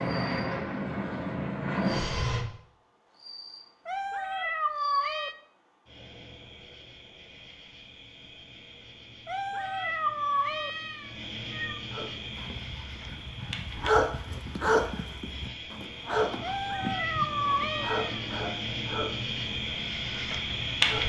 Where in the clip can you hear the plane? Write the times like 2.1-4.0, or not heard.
0.0-2.5.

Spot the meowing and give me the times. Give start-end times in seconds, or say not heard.
3.9-5.3, 9.2-11.8, 16.4-18.2.